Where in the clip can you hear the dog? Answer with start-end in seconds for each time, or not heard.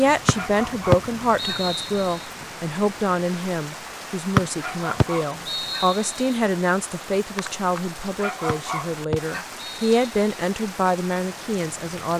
0.3-1.6, 4.5-5.9, 8.2-9.5.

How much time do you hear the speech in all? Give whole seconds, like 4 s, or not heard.
12 s.